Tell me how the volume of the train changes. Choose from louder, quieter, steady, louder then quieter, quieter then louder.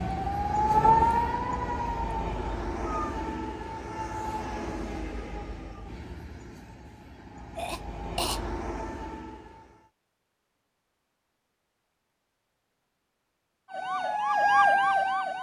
quieter then louder.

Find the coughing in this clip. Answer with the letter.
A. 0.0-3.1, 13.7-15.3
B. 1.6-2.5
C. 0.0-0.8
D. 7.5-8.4
D.